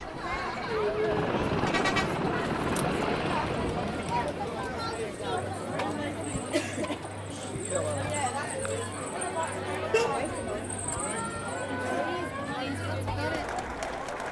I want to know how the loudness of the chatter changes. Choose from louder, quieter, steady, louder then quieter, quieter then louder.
steady.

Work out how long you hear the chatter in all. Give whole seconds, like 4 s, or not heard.
14 s.